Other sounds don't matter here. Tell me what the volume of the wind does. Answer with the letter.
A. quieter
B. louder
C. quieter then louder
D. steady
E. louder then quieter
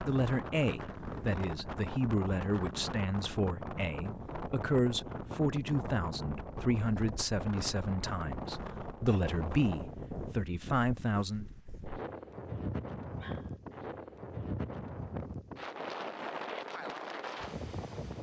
D.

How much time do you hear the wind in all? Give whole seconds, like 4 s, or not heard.
18 s.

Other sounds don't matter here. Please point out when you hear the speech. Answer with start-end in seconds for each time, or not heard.
0.0-11.4.